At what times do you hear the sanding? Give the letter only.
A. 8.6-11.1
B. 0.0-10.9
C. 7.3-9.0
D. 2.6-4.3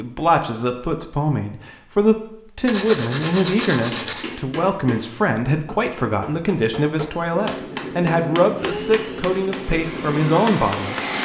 D.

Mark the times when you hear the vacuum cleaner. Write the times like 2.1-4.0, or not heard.
8.6-11.1.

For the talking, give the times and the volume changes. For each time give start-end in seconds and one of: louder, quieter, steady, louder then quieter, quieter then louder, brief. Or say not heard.
0.0-10.9 steady.